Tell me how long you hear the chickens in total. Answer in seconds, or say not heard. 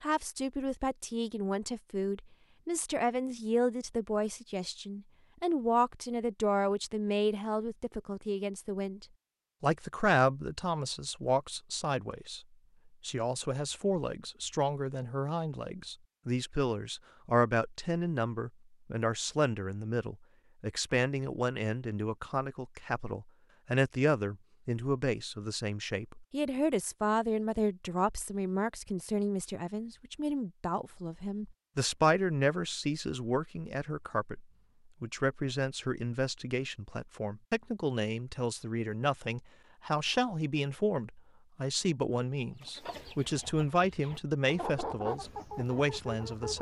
4 s.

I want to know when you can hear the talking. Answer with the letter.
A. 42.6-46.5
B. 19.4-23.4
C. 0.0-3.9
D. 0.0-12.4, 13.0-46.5
D.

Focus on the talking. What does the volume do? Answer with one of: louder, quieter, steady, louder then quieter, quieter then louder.
steady.